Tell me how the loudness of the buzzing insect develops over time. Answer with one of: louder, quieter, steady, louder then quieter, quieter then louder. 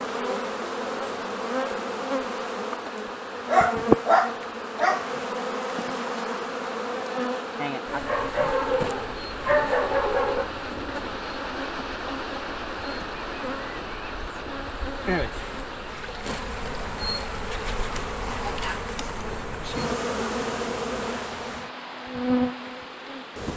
quieter then louder.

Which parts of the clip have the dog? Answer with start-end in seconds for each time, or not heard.
3.5-5.0, 8.1-10.5, 17.9-19.4.